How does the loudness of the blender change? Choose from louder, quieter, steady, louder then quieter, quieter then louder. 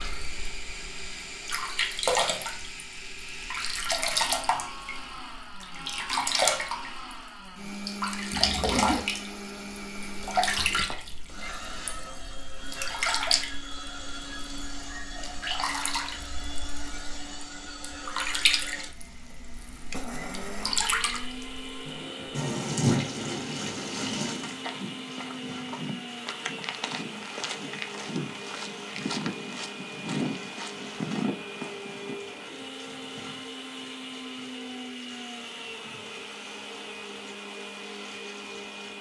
steady.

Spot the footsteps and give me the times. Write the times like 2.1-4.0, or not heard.
24.2-32.1.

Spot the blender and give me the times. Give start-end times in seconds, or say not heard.
0.0-38.9.